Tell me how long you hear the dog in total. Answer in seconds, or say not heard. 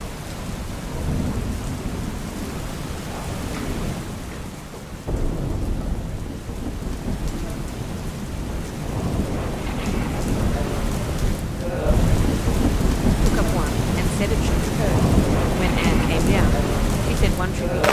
not heard.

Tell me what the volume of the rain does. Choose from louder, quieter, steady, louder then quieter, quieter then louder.
louder.